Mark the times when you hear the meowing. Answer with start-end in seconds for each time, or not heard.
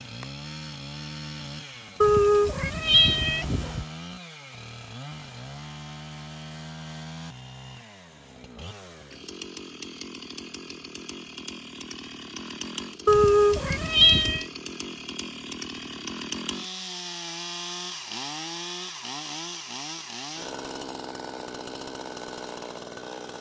2.0-3.9, 13.1-14.4.